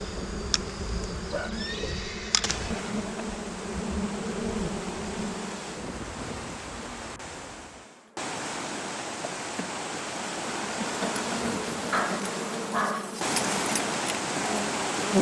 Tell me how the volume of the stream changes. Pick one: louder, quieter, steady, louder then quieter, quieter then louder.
louder.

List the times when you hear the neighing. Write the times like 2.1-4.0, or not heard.
1.5-3.0.